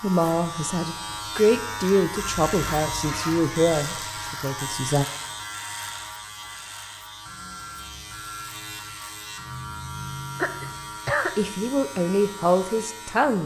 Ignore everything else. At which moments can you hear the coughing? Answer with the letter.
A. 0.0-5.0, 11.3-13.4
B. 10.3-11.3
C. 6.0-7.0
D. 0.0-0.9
B.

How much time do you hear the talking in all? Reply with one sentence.
You can hear the talking for 7 seconds altogether.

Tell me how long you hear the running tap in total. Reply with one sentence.
You can't hear the running tap here.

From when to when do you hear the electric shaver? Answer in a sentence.
The electric shaver can be heard from 0.0 to 13.4 s.